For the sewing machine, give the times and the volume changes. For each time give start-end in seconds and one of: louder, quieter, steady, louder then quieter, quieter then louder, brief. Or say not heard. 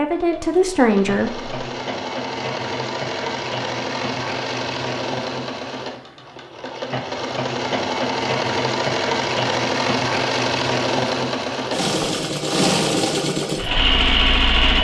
0.0-14.7 louder.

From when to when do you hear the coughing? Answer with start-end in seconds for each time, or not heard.
not heard.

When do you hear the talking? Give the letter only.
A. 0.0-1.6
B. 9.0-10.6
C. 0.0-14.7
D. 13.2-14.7
A.